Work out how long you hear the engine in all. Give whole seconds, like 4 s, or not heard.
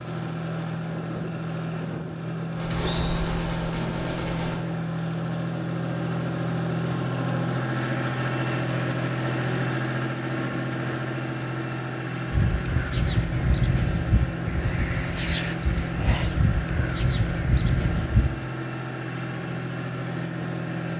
21 s.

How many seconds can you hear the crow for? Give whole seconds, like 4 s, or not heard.
6 s.